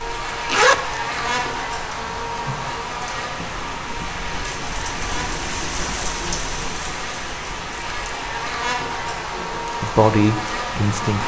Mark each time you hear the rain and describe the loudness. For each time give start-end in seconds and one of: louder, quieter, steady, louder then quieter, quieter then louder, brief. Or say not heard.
0.0-11.2 louder then quieter.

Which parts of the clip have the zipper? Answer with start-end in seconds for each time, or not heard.
0.3-1.4.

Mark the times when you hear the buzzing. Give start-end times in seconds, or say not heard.
0.0-11.2.